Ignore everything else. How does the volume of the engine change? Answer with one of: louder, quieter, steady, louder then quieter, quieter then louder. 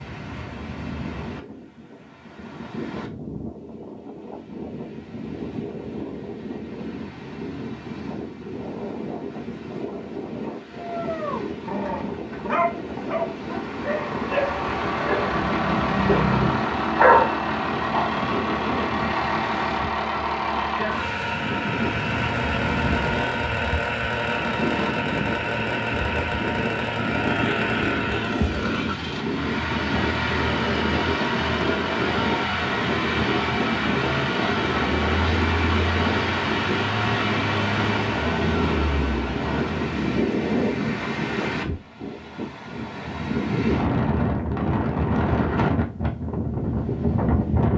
steady.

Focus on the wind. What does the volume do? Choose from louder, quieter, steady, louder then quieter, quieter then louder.
louder.